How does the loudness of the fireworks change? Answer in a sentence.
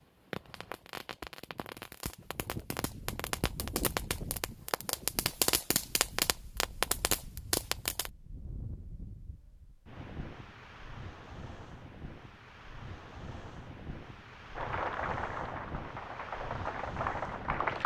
The volume of the fireworks goes up.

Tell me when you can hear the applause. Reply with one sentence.
The applause can be heard from 14.6 to 17.8 s.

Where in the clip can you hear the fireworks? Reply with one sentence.
The fireworks can be heard from 0.0 to 8.1 s.